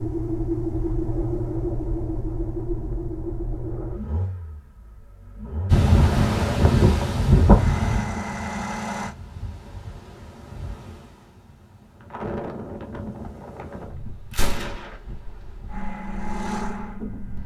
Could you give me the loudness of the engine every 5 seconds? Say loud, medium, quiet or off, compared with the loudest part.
loud, loud, off, loud.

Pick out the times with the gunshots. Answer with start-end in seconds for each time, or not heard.
14.3-14.9.